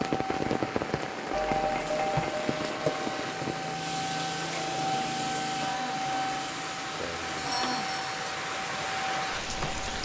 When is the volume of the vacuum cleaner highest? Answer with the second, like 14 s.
5 s.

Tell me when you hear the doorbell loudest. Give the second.
2 s.